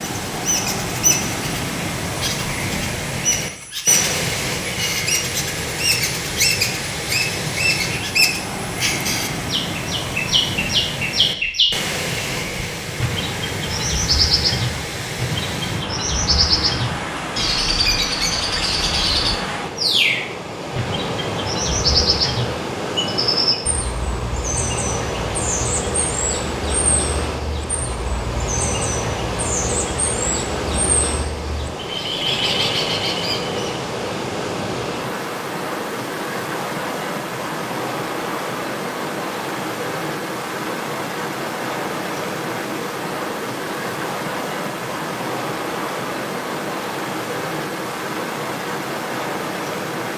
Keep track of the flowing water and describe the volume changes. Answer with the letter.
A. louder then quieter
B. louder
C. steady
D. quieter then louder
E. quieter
C.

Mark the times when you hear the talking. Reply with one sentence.
You can't hear the talking here.